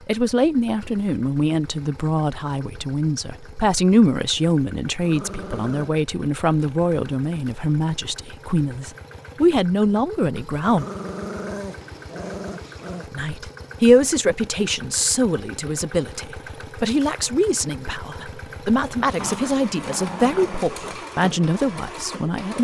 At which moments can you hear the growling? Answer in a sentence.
You can hear the growling from 5.0 to 5.9 s, from 10.7 to 13.1 s and from 19.1 to 21.1 s.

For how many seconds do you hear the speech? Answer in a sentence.
You can hear the speech for 20 seconds altogether.